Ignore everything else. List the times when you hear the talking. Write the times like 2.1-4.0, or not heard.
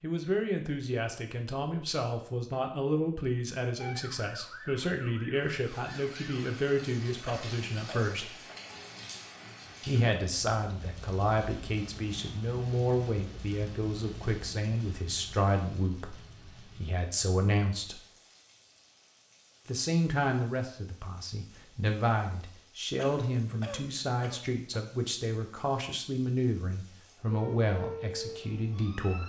0.0-8.3, 9.8-18.0, 19.6-29.2.